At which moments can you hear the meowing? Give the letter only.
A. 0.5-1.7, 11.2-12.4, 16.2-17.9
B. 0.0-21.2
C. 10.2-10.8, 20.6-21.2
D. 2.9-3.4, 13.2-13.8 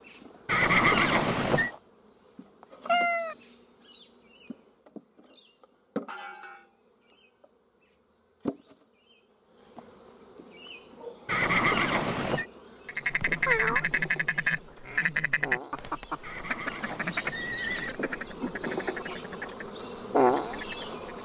D.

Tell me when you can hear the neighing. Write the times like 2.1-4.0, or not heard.
0.5-1.7, 11.2-12.4, 16.2-17.9.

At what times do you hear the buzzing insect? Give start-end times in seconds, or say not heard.
0.0-21.2.